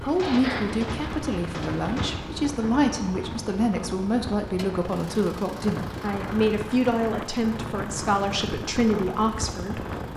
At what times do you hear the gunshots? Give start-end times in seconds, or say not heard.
0.1-2.2.